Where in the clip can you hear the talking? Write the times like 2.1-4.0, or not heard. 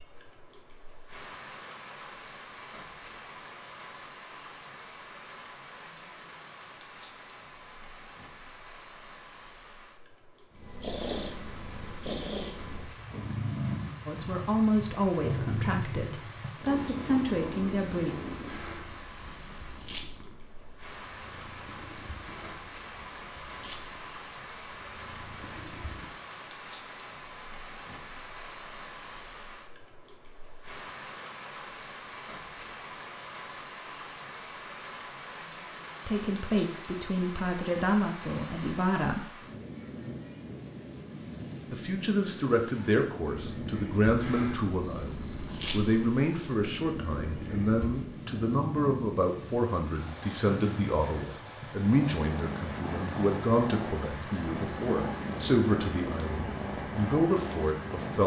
14.1-18.1, 36.0-39.2, 41.7-58.2.